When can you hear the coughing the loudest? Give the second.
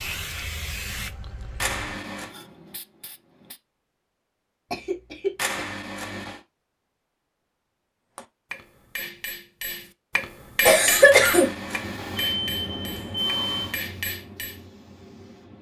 11 s.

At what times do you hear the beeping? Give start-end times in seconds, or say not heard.
1.6-2.3, 5.3-6.4, 11.1-13.8.